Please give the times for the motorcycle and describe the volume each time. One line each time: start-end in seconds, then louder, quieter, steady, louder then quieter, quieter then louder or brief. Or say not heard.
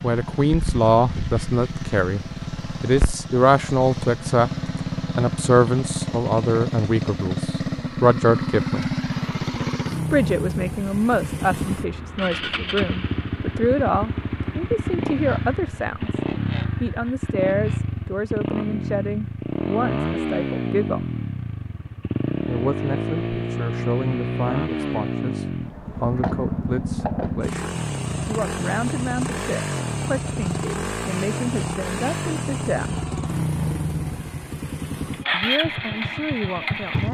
0.0-37.0 steady.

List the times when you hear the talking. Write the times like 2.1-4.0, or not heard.
0.0-8.9, 10.1-16.1, 16.8-21.1, 22.4-33.0, 35.3-37.0.